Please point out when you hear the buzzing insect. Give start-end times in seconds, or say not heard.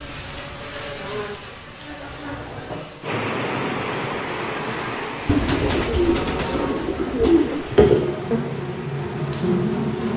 0.0-10.1.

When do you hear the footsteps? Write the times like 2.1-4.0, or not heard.
not heard.